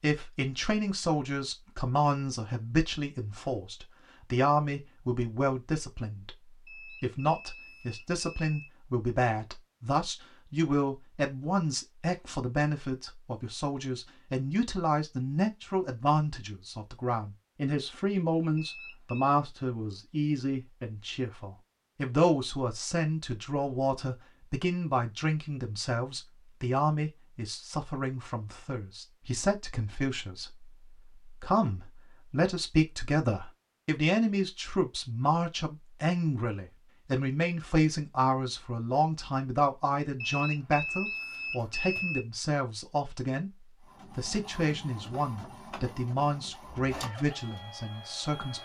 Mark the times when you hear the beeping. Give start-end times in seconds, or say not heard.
6.7-8.7, 18.6-19.4, 40.2-42.2.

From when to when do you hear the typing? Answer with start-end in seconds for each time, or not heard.
not heard.